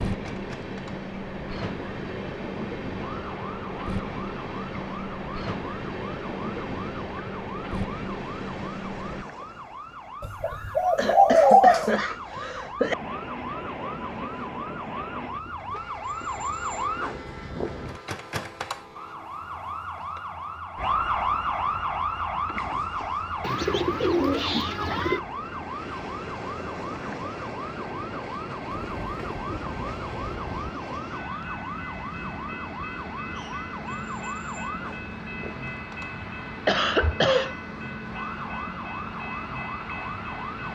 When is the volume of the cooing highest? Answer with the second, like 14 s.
12 s.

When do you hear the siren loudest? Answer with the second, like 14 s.
21 s.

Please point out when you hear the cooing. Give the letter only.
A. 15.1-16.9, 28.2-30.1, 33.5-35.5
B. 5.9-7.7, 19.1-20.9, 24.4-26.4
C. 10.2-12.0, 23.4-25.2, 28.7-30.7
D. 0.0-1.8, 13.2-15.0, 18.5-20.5
C.